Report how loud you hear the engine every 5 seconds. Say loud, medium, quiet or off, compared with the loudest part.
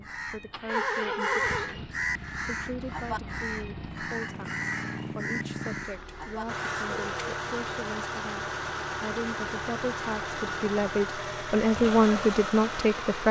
medium, loud, loud.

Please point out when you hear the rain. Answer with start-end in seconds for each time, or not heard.
not heard.